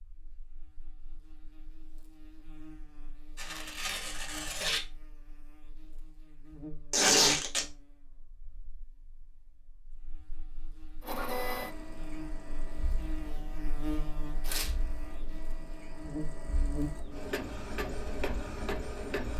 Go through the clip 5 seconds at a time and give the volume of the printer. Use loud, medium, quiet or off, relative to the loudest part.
off, off, loud, loud.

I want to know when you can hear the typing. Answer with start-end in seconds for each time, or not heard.
not heard.